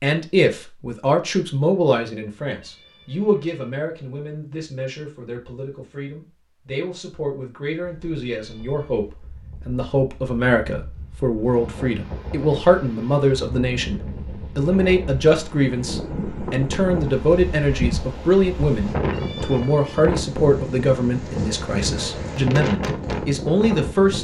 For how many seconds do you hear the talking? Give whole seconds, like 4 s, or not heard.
24 s.